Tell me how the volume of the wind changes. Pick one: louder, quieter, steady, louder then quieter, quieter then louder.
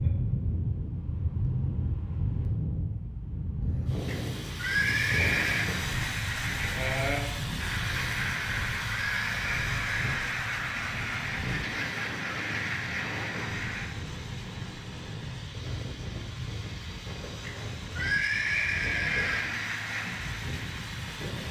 quieter.